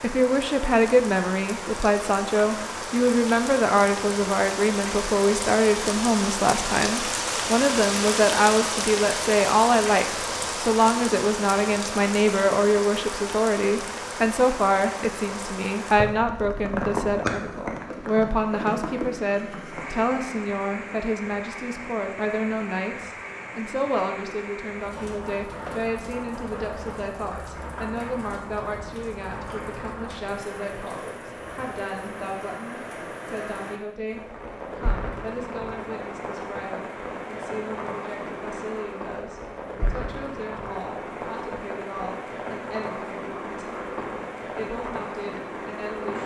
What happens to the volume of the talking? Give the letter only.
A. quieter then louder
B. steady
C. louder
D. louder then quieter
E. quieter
E.